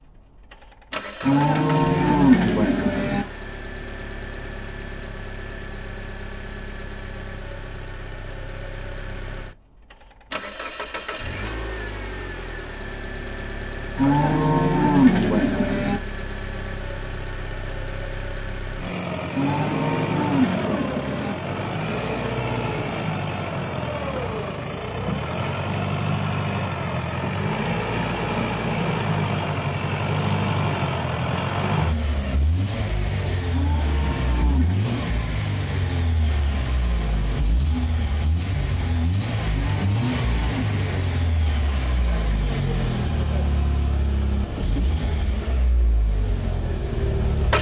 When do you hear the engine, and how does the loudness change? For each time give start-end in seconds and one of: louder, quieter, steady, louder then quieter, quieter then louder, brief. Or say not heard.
0.0-47.5 louder.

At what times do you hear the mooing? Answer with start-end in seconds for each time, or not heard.
1.2-3.2, 13.9-16.0, 19.3-21.4, 33.5-35.4, 39.5-41.5.